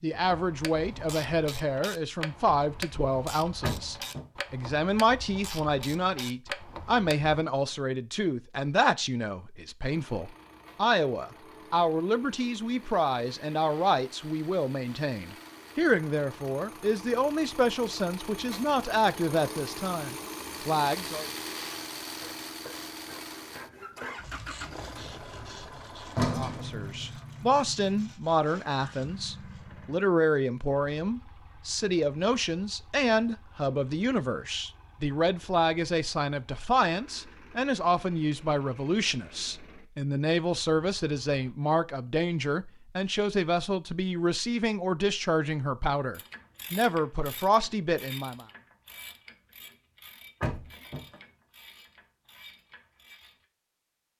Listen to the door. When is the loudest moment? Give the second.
26 s.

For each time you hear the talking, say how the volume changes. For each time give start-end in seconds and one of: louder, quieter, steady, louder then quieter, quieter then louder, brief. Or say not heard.
0.0-21.3 steady
26.4-48.5 steady.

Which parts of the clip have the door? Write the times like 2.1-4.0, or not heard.
3.6-4.3, 25.1-27.1, 50.4-51.1.